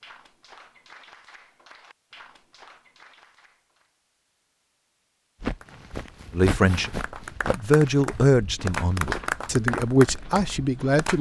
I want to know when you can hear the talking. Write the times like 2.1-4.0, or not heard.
6.3-11.1.